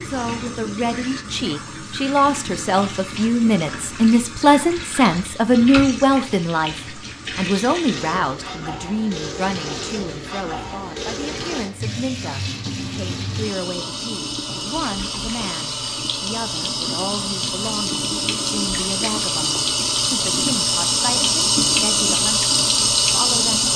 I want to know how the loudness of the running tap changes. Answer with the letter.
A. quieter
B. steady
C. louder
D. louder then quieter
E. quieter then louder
C.